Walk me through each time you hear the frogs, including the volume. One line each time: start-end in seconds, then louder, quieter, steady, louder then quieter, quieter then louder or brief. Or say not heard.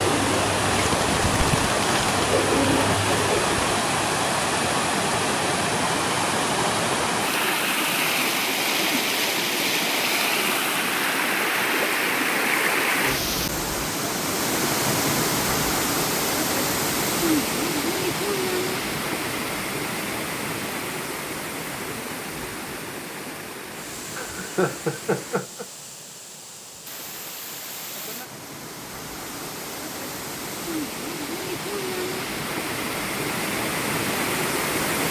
not heard.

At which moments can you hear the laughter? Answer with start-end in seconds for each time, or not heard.
24.1-25.6.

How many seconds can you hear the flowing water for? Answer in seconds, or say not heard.
35 s.